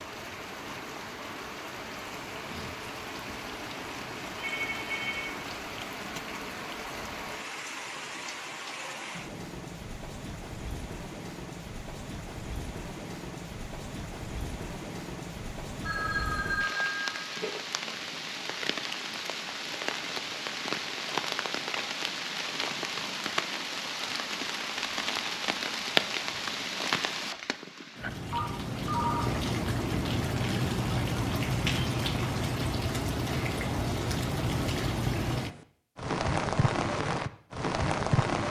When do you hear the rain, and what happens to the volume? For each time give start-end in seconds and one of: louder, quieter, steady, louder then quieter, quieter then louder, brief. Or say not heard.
0.0-38.4 louder.